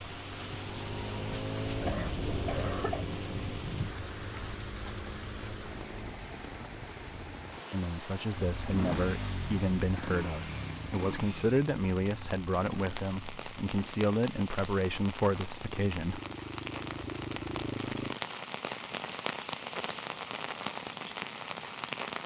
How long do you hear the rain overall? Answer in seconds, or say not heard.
22 s.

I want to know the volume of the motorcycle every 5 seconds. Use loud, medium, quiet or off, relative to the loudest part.
loud, loud, loud, loud, off.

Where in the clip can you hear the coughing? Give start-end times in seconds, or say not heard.
1.8-3.0.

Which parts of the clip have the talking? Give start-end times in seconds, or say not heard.
7.7-16.2.